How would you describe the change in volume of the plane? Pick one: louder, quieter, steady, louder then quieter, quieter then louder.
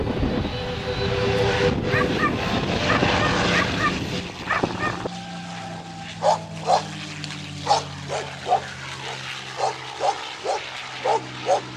quieter.